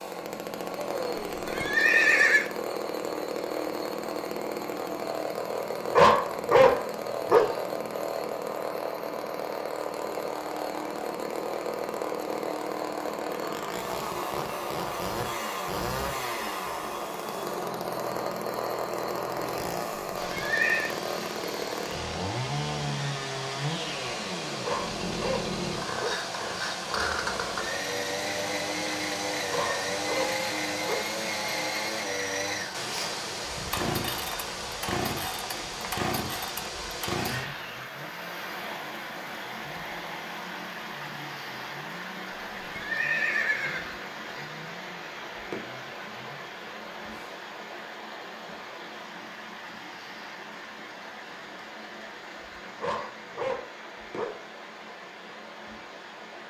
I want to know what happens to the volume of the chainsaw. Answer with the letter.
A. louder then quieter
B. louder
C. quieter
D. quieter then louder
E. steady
C.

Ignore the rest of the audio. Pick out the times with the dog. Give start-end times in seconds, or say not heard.
5.8-7.5, 24.4-26.2, 29.5-31.1, 52.8-54.4.